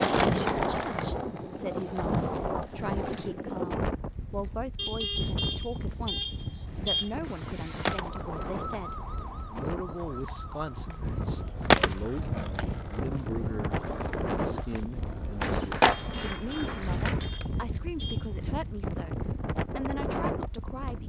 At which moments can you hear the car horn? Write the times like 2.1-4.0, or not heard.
4.8-7.1, 15.9-18.4.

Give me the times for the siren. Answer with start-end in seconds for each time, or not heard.
7.2-11.6.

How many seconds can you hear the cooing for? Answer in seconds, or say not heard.
not heard.